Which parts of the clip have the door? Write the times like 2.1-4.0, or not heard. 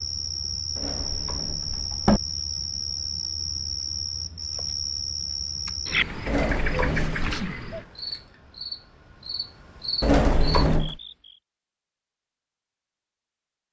0.8-2.2, 6.2-7.5, 10.0-10.9.